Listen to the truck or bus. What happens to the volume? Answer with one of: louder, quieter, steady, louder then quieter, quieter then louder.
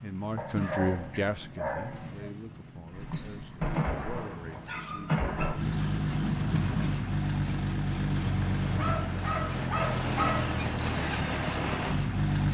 louder.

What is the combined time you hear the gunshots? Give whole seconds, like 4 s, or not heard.
3 s.